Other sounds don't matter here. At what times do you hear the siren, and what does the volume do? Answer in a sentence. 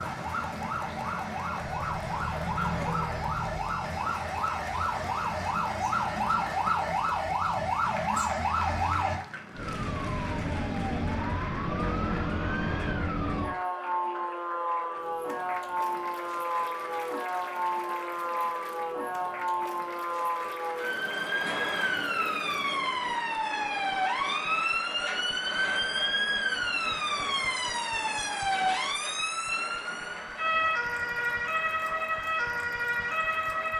You can hear the siren from 0.0 to 33.7 s, at a steady volume.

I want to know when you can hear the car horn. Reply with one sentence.
The car horn can be heard from 1.7 to 3.6 s.